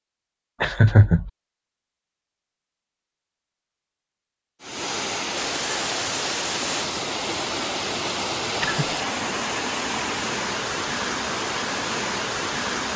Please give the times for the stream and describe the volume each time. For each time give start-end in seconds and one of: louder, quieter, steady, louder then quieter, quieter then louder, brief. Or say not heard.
4.6-12.9 steady.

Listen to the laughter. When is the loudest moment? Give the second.
1 s.